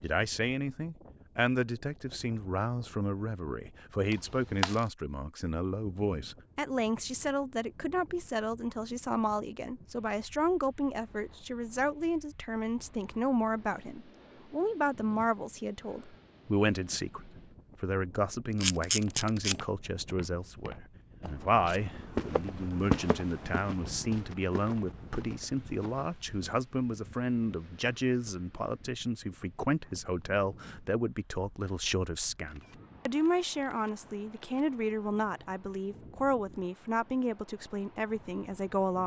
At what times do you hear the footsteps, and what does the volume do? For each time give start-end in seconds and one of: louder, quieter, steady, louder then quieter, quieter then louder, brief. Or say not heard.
18.9-26.1 louder then quieter.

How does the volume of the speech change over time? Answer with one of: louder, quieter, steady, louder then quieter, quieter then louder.
steady.